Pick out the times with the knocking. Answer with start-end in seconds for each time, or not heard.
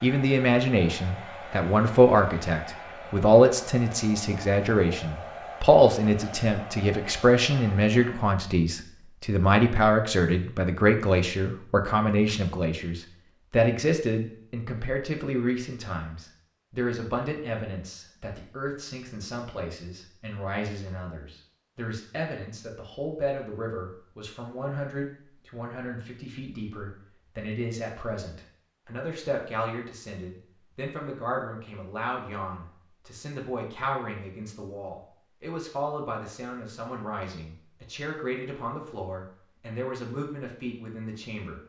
not heard.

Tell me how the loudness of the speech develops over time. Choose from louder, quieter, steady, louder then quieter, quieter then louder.
quieter.